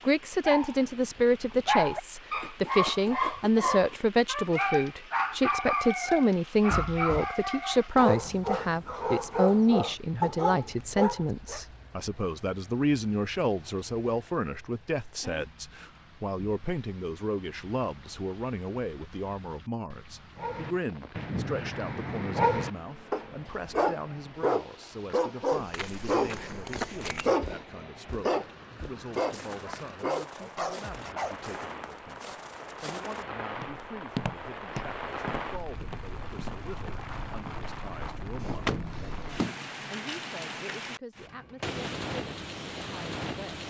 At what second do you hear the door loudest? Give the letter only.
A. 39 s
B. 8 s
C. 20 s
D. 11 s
A.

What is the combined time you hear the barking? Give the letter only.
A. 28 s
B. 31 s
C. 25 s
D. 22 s
D.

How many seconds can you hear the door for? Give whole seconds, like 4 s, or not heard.
2 s.